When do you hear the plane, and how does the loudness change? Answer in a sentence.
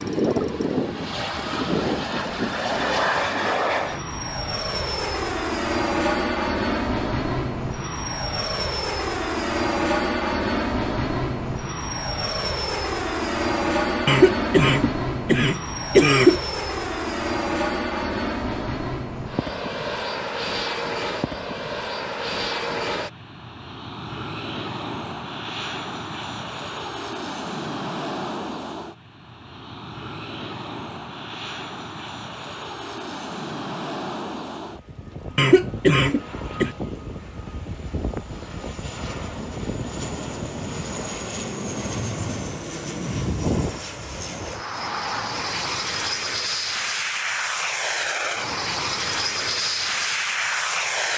You can hear the plane from 0.0 to 51.1 s, getting quieter then louder.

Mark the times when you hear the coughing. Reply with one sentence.
You can hear the coughing from 14.1 to 16.4 s and from 35.4 to 36.7 s.